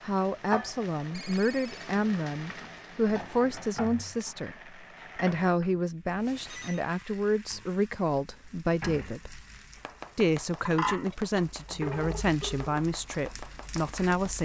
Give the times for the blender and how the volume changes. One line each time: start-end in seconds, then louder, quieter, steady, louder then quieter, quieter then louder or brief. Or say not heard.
not heard.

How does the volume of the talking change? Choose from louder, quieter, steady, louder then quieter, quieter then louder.
steady.